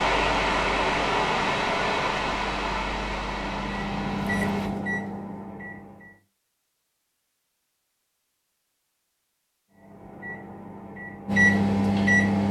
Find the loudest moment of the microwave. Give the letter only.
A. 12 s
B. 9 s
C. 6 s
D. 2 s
A.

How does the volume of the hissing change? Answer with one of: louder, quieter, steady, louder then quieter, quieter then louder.
quieter.